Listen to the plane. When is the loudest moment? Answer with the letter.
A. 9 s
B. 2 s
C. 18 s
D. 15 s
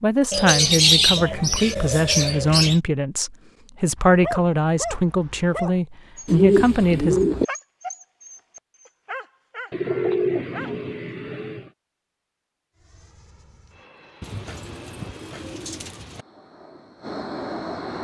C.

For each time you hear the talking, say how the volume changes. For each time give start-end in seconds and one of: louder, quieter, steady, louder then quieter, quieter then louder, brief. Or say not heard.
0.0-7.2 steady.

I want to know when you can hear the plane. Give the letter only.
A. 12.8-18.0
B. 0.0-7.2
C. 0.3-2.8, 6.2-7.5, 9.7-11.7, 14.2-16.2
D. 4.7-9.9
A.